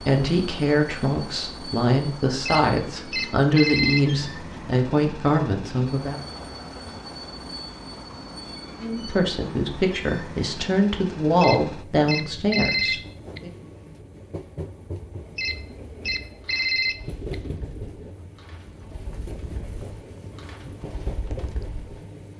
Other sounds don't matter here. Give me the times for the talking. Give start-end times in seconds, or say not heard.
0.0-6.2, 8.8-13.5.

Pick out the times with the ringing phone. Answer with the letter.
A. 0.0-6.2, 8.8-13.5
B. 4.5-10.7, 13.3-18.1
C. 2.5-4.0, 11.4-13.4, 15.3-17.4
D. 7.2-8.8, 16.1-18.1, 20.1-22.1
C.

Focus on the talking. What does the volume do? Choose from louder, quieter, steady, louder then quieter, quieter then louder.
steady.